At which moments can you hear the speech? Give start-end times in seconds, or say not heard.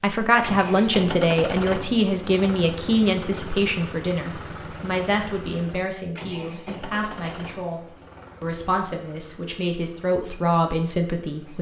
0.0-11.5.